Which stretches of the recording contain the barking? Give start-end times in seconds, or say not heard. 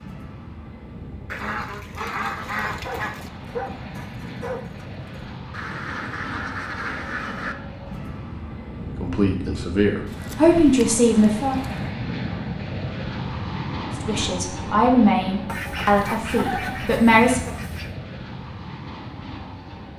2.6-5.4.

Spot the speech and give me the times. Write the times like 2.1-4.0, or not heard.
9.0-11.6, 14.1-17.6.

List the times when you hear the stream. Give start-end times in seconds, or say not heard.
not heard.